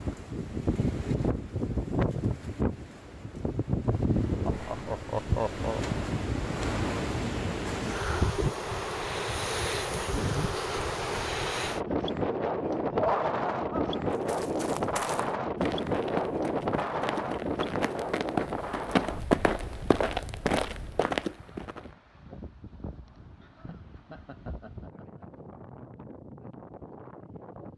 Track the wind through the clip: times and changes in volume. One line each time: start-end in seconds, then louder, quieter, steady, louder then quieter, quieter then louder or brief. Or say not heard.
0.0-27.7 quieter.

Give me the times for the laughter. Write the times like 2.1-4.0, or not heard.
4.5-5.8, 12.9-14.0, 23.1-25.2.